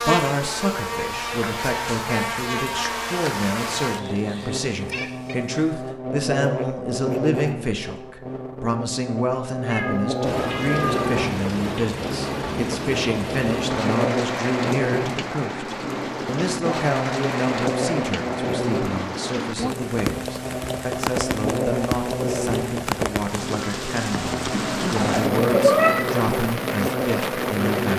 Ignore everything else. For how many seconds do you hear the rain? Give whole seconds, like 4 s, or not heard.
18 s.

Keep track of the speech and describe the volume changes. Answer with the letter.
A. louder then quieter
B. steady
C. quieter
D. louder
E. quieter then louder
B.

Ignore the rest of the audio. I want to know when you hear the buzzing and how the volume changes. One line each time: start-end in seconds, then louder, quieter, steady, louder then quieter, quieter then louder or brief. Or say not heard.
0.0-27.9 steady.